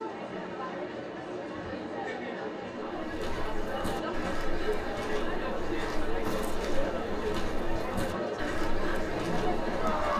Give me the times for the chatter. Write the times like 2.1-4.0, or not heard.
0.0-10.1.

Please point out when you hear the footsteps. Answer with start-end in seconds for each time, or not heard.
3.0-10.1.